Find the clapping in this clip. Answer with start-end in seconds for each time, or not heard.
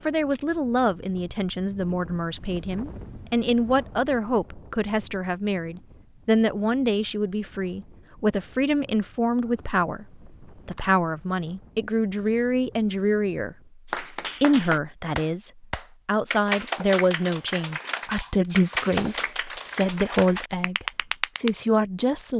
13.9-21.5.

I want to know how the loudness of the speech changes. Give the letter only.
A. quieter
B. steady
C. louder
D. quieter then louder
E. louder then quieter
B.